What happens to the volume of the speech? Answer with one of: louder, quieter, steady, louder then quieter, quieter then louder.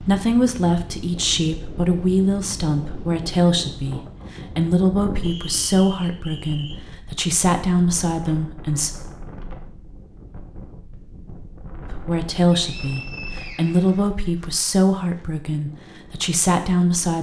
steady.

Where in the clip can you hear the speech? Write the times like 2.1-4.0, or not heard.
0.0-8.9, 11.8-17.1.